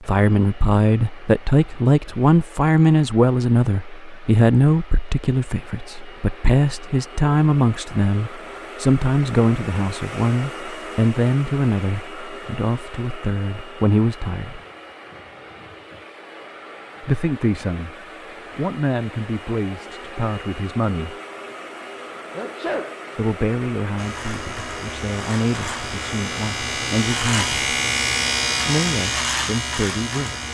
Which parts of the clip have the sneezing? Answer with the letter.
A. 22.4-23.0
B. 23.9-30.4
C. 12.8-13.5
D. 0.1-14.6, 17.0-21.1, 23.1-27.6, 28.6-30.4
A.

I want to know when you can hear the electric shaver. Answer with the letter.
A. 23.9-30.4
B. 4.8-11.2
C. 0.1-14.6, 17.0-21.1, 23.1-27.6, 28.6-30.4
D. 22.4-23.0
A.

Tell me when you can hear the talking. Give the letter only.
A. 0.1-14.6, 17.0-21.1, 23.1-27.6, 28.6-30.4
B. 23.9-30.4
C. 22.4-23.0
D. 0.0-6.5
A.